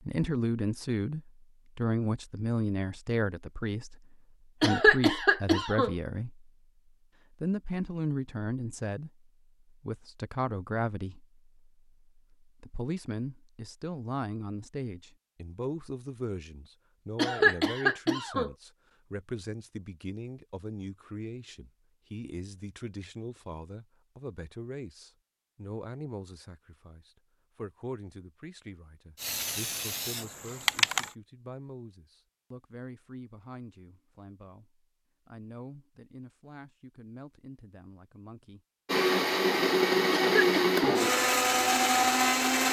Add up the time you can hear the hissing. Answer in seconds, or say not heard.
2 s.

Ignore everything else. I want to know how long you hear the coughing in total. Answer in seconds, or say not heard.
3 s.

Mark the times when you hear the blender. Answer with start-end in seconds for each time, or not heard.
38.9-42.6.